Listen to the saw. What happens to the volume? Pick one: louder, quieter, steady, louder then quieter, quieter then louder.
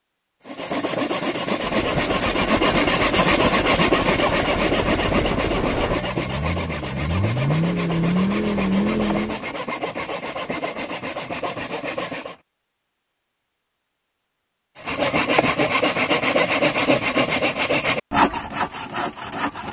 quieter then louder.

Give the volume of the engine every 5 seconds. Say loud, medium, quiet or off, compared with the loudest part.
medium, loud, off, off.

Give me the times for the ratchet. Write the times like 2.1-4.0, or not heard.
not heard.